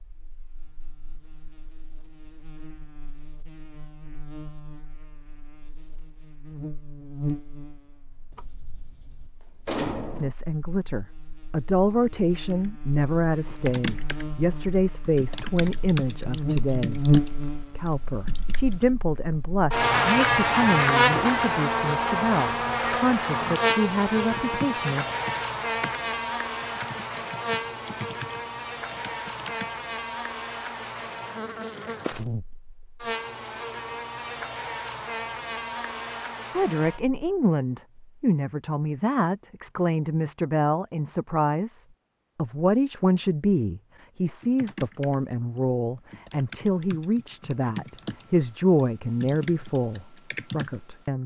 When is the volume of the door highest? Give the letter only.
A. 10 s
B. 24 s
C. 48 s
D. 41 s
A.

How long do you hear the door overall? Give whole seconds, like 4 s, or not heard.
2 s.